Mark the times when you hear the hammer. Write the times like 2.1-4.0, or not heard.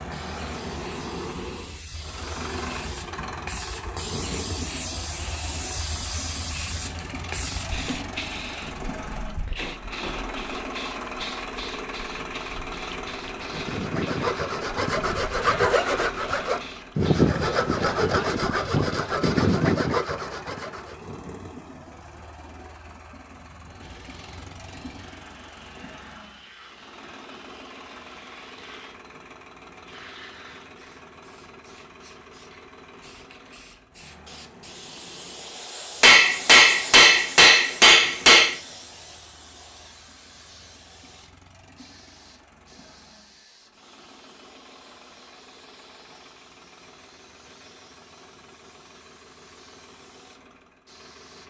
36.0-38.5.